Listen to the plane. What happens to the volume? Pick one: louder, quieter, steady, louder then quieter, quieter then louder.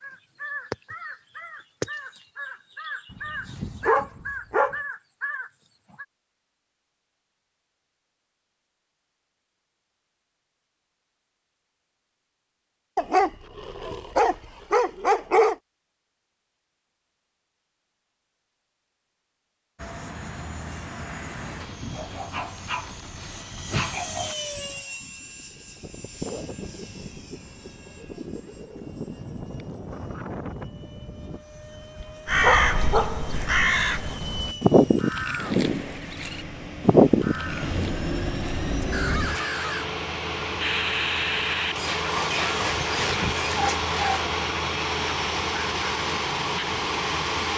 louder.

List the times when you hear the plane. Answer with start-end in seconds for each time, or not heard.
19.8-47.5.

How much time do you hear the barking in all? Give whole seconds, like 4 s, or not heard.
11 s.